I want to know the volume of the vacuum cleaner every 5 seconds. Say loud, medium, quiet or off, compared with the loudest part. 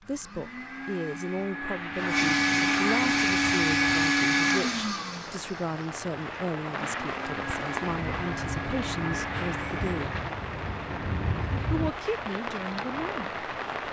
loud, quiet, off.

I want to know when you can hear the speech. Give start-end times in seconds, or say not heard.
0.1-10.2, 11.7-13.8.